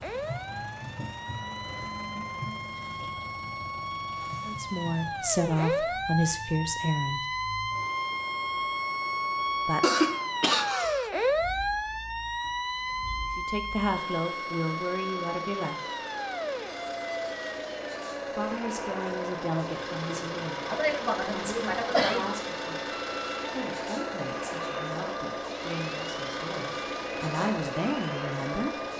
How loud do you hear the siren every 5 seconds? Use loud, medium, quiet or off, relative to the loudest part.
medium, loud, loud, medium, medium, medium.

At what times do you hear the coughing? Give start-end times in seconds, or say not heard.
9.8-11.1, 20.6-22.4.